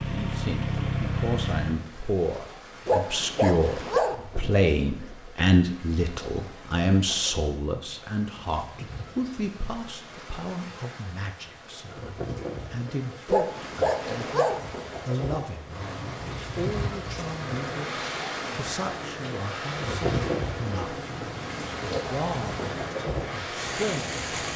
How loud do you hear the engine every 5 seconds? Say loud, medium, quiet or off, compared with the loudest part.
loud, off, off, medium, medium.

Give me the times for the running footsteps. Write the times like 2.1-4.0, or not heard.
not heard.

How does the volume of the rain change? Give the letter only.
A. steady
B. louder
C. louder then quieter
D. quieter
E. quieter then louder
B.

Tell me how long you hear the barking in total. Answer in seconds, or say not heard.
3 s.